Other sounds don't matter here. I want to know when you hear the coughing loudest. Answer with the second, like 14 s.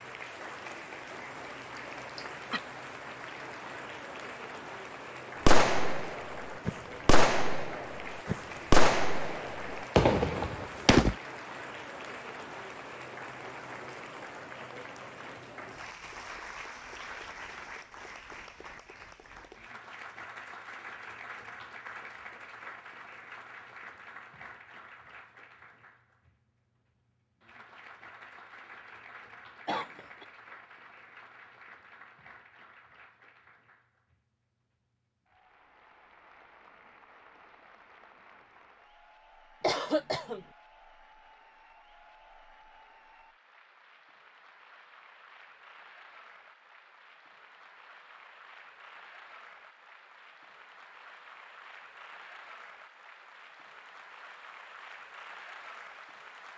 40 s.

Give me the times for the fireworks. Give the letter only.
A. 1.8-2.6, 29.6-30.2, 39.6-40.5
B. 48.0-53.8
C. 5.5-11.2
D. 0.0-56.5
C.